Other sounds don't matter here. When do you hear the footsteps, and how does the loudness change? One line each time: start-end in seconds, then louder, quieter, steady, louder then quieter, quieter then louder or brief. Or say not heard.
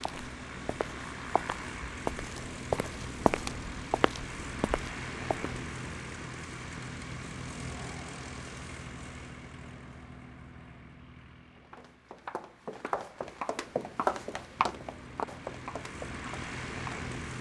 0.0-5.3 louder then quieter
11.6-17.1 louder then quieter.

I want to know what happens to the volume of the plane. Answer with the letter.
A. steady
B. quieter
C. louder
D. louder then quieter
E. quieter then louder
E.